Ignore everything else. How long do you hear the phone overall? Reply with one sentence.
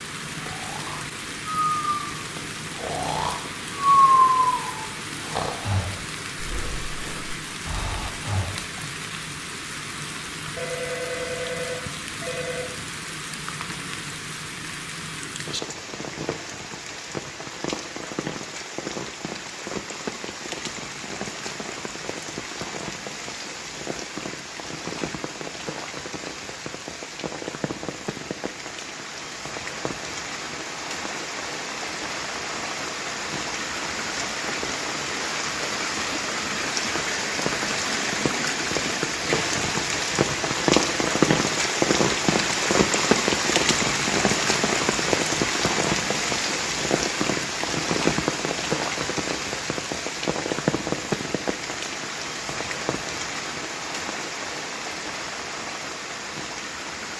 You can hear the phone for 2 seconds altogether.